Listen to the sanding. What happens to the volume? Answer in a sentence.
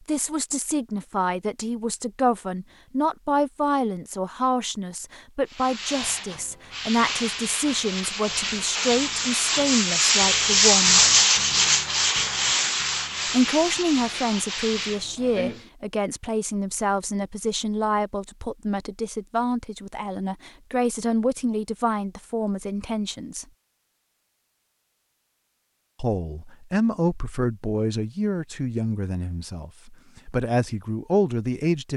The loudness of the sanding goes up, then down.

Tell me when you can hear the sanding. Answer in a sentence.
You can hear the sanding from 5.5 to 15.7 s.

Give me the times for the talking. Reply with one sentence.
The talking can be heard from 0.1 to 11.1 s, from 13.3 to 23.4 s and from 26.0 to 31.9 s.